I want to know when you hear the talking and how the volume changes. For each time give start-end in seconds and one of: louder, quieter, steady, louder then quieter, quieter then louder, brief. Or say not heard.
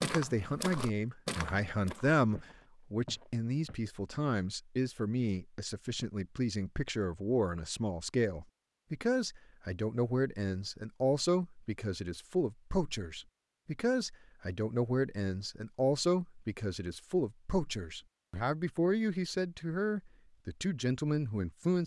0.0-21.8 steady.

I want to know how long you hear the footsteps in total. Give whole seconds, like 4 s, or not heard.
4 s.